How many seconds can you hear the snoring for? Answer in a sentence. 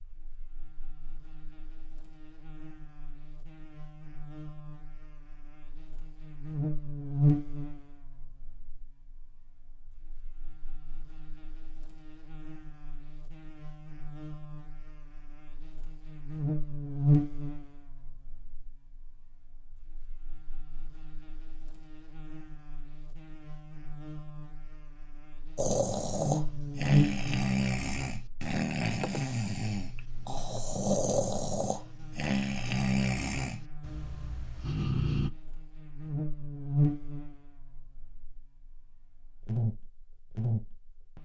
The snoring can be heard for 10 seconds in total.